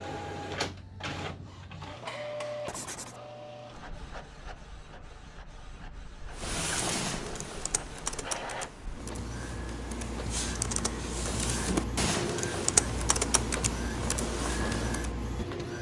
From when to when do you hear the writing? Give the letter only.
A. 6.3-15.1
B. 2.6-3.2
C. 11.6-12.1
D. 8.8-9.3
B.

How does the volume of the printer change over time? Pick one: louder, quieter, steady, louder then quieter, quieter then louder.
quieter then louder.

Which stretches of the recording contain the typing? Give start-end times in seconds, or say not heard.
6.3-15.1.